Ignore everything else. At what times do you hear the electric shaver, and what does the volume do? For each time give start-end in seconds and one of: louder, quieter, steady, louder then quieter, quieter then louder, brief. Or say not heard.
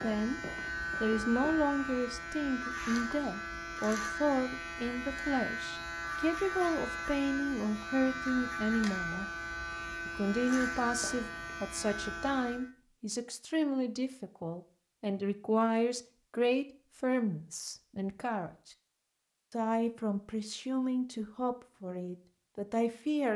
0.0-12.7 steady.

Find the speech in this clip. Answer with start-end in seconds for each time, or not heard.
0.0-0.4, 1.0-9.2, 10.1-18.8, 19.5-23.3.